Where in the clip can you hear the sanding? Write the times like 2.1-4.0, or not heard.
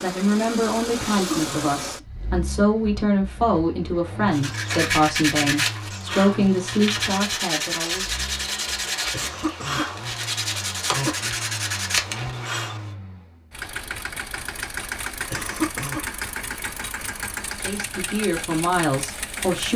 4.3-12.9.